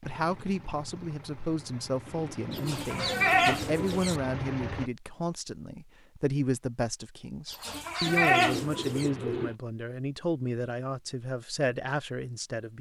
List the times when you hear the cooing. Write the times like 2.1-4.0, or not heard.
2.0-4.0, 8.1-9.6.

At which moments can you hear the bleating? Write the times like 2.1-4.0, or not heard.
2.5-4.2, 7.5-9.1.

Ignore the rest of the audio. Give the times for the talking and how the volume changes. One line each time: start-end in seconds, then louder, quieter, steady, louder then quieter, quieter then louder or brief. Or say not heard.
0.0-12.7 steady.